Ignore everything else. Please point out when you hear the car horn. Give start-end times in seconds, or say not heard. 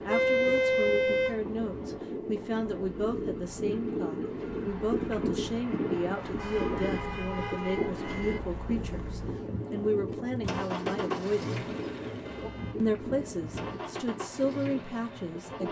0.1-1.4, 6.3-8.4, 12.2-13.7.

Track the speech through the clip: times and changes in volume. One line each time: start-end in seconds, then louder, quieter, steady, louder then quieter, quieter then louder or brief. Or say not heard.
0.0-11.6 steady
12.8-15.6 brief.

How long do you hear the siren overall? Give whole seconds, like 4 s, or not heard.
not heard.